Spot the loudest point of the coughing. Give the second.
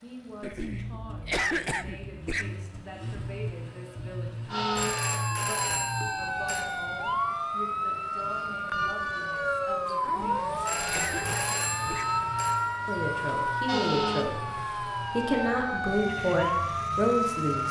1 s.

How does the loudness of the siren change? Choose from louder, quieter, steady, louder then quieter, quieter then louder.
steady.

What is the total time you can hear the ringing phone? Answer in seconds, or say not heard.
4 s.